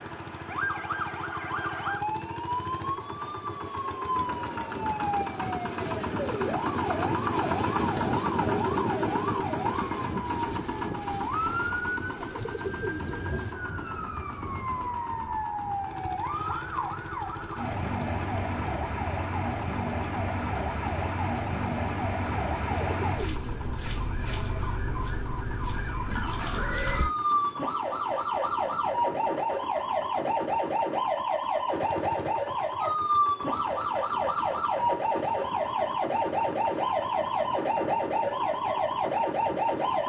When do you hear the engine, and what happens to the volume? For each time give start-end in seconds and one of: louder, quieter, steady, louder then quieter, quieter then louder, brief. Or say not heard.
0.0-40.0 quieter.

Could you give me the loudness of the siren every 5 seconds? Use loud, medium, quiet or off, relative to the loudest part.
medium, medium, medium, medium, medium, loud, loud, loud.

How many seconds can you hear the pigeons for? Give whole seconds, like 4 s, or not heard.
3 s.